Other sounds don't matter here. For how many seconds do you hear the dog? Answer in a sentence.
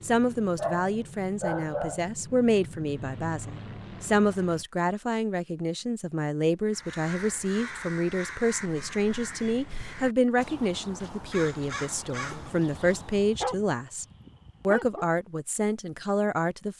You can hear the dog for 4 seconds altogether.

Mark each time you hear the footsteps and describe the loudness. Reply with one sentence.
The footsteps can't be heard in this clip.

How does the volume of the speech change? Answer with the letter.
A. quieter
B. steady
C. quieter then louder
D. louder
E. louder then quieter
B.